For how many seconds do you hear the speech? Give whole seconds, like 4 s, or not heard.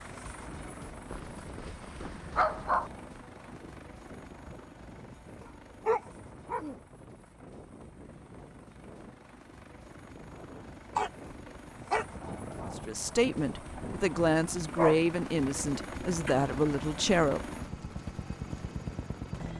5 s.